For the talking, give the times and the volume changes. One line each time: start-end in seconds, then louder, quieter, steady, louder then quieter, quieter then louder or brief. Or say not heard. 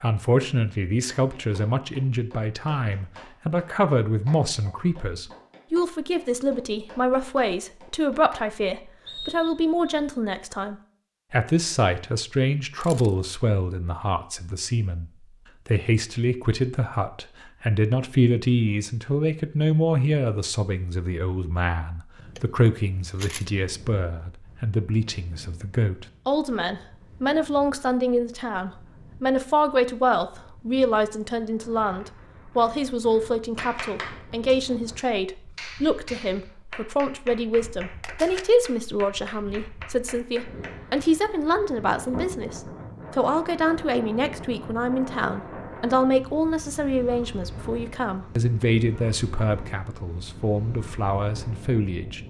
0.0-52.2 steady.